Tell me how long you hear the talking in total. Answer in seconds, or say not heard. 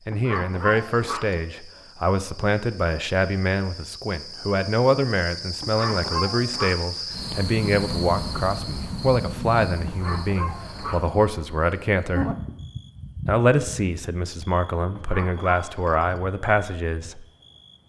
16 s.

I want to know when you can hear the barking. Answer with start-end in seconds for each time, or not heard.
0.1-1.4, 5.6-6.8, 9.8-11.1, 14.9-16.2.